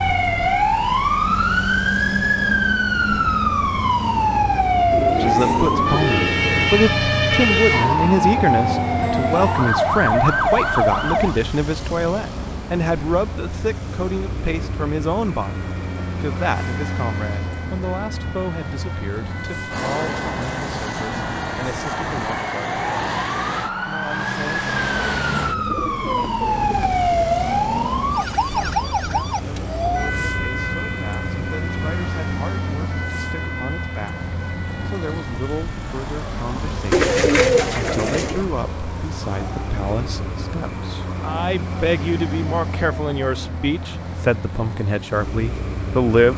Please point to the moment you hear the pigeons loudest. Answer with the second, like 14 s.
37 s.